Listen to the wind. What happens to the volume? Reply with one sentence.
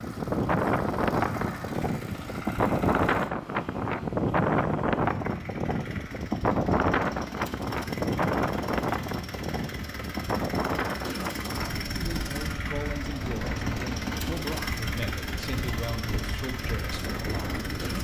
The volume of the wind goes down.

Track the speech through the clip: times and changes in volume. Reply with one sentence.
The speech can be heard from 11.9 to 17.7 s, at a steady volume.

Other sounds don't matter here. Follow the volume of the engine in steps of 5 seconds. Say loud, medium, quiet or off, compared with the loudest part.
medium, medium, loud, loud.